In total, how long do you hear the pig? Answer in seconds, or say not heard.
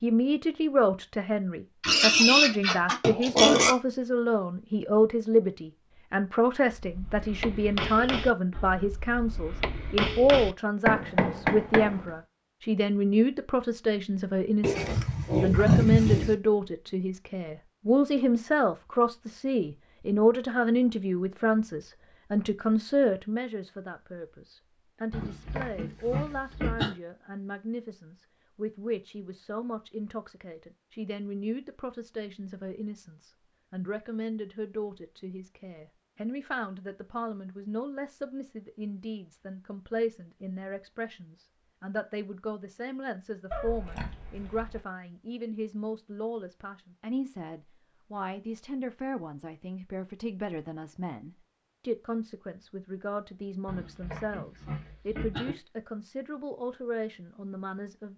9 s.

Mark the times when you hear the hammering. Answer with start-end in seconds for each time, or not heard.
6.7-12.1.